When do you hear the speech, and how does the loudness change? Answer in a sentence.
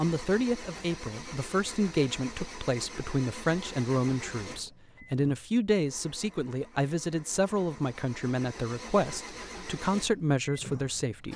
You can hear the speech from 0.0 to 11.3 s, at a steady volume.